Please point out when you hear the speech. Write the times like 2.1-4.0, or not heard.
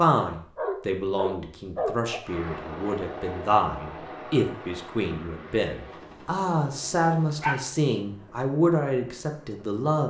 0.0-10.0.